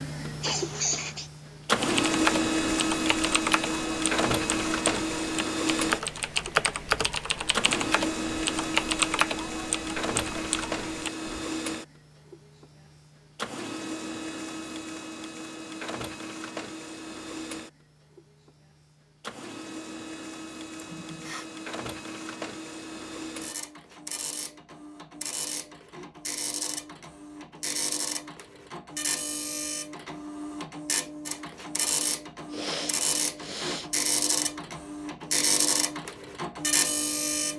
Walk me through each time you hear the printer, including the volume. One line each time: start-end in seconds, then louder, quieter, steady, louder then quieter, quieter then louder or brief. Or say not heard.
0.0-37.5 quieter then louder.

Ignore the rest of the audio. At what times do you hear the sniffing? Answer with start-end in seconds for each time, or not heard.
0.2-1.3, 20.8-21.4, 32.5-33.9.